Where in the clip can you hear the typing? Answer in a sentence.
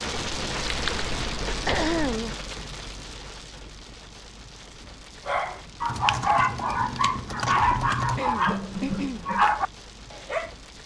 You can hear the typing from 0.1 to 2.1 s and from 5.8 to 8.2 s.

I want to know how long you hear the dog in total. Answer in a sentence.
The dog can be heard for 5 seconds in total.